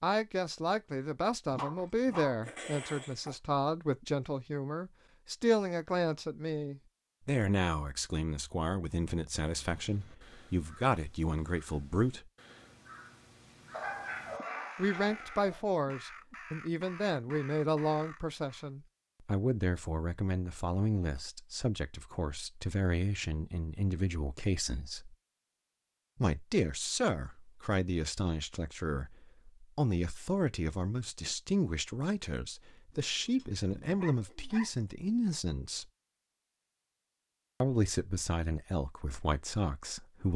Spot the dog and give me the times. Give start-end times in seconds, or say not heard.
1.5-3.4, 13.7-15.6, 32.9-34.6.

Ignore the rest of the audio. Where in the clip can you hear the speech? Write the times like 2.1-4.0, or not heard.
0.0-12.3, 14.8-25.1, 26.1-35.9, 37.6-40.3.